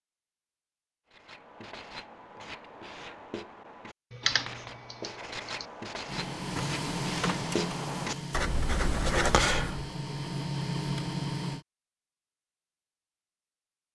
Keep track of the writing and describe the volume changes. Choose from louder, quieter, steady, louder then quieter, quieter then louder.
louder.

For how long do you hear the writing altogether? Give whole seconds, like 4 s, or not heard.
9 s.